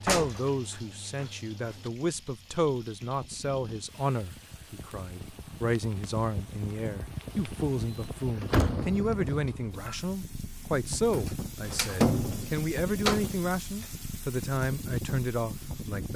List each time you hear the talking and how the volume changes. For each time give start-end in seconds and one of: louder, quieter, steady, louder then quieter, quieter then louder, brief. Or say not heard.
0.0-16.1 steady.